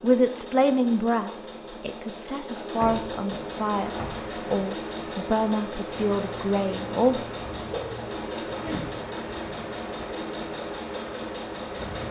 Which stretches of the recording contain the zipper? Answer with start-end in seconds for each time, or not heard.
8.4-9.6.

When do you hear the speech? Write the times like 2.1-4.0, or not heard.
0.0-7.4.